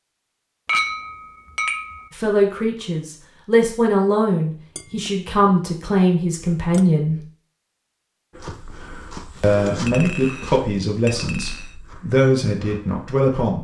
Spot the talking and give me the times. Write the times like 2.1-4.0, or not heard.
2.1-7.2, 9.4-13.5.